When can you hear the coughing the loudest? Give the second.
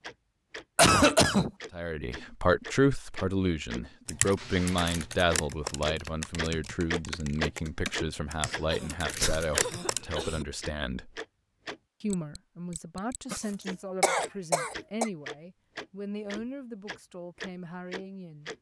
1 s.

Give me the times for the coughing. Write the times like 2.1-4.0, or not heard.
0.8-1.5, 8.4-10.4, 13.3-15.1.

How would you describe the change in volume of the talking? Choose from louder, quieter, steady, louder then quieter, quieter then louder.
quieter.